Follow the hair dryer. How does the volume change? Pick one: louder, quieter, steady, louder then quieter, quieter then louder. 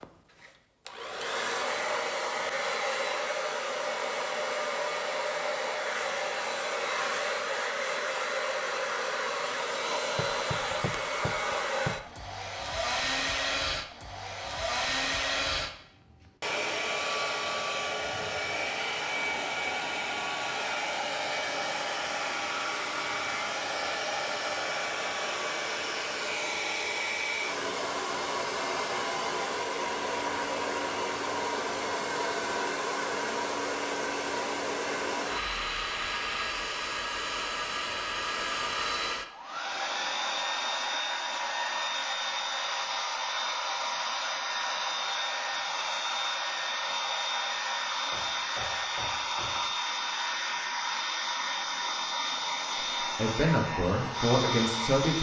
steady.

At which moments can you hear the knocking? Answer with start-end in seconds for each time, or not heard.
10.2-12.1, 48.1-49.8.